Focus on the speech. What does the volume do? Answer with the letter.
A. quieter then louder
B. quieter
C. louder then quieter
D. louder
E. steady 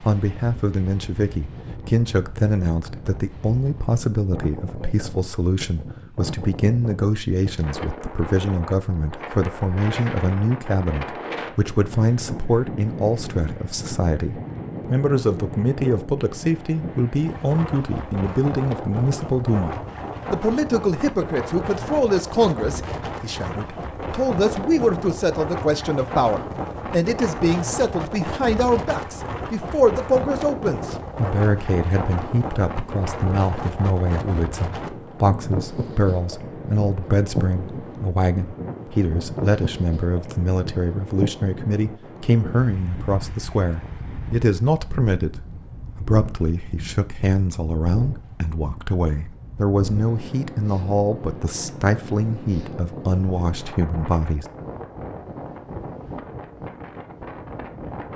E.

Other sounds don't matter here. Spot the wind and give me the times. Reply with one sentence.
You can hear the wind from 0.0 to 58.1 s.